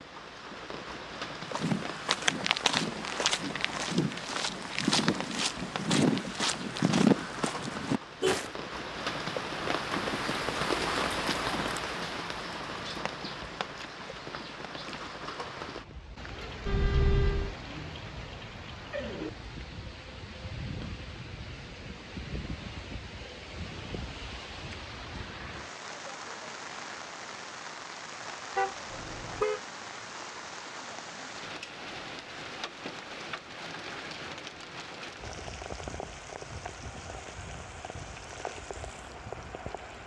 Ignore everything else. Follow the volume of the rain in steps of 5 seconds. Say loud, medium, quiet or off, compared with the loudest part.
medium, loud, loud, medium, medium, medium, medium, medium.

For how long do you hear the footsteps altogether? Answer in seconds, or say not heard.
7 s.